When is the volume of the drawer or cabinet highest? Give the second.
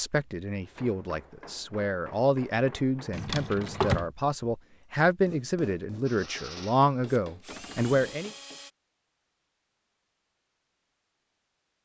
4 s.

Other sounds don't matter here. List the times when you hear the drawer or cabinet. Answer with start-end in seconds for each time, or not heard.
3.1-4.0, 7.5-8.0.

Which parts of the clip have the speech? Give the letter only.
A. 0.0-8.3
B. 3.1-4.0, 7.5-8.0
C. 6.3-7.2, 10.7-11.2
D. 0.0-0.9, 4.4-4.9
A.